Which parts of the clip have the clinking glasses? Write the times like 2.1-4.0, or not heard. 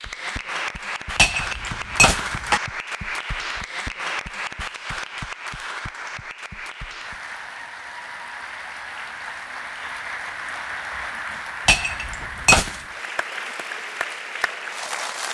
1.1-2.6, 11.7-12.8.